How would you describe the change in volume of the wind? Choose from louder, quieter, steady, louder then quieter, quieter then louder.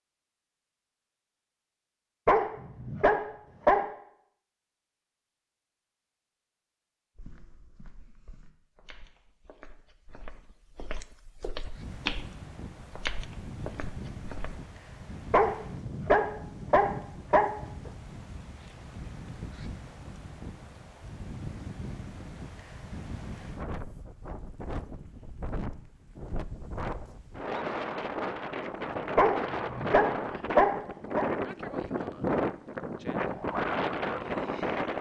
louder.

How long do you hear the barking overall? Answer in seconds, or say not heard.
6 s.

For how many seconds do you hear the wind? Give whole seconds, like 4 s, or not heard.
23 s.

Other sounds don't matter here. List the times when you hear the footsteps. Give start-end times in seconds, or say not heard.
7.2-14.6.